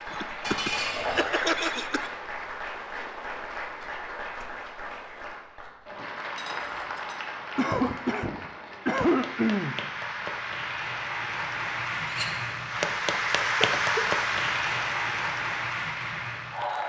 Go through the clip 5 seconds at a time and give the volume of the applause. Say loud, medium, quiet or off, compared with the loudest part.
medium, medium, loud, loud.